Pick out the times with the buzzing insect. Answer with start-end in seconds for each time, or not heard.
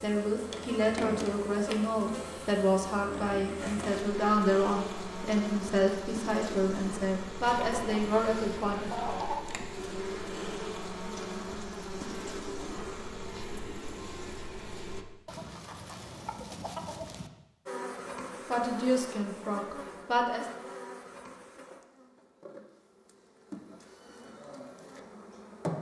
0.0-15.1, 17.6-25.7.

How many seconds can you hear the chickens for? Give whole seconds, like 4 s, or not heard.
4 s.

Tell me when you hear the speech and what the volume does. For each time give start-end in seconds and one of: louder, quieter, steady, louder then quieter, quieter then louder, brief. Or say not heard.
0.0-9.1 steady
18.5-20.4 brief.